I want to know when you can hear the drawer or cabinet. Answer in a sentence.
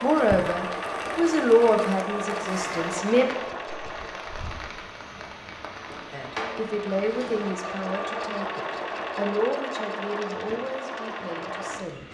The drawer or cabinet can be heard from 5.9 to 7.5 s.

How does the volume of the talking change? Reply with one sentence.
The volume of the talking goes down.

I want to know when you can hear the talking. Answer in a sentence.
The talking can be heard from 0.0 to 3.3 s and from 6.1 to 12.0 s.